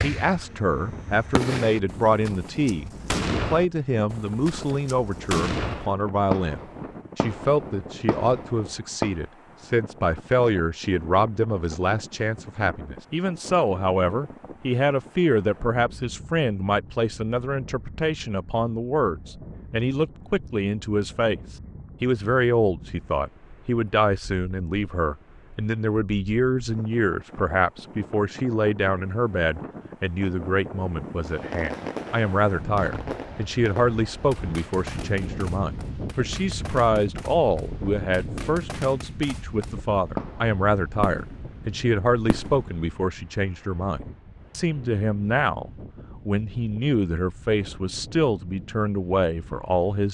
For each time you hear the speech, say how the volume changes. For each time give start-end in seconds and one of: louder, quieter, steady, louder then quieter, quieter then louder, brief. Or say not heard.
0.0-50.0 steady.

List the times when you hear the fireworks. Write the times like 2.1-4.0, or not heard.
0.0-9.2, 31.2-43.0.